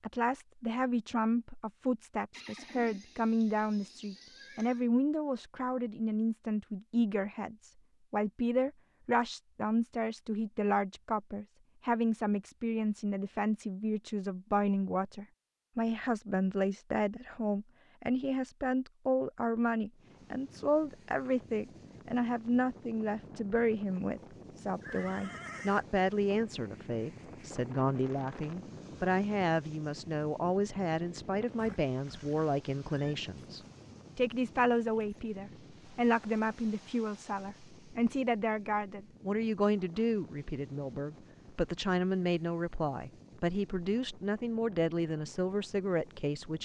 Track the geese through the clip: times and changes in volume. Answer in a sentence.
The geese can't be heard in this clip.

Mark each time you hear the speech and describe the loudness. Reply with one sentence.
You can hear the speech from 0.0 to 46.5 s, at a steady volume.